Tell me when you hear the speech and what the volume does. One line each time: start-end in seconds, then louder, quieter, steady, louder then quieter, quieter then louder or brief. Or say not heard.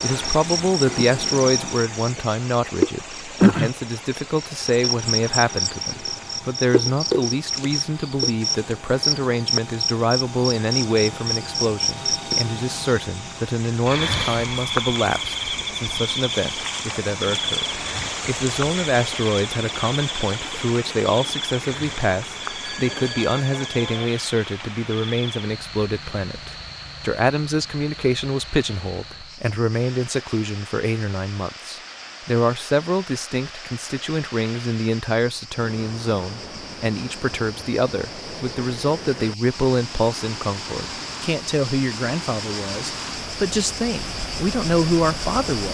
0.0-45.7 steady.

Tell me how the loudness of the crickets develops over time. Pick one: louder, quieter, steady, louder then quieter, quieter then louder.
quieter then louder.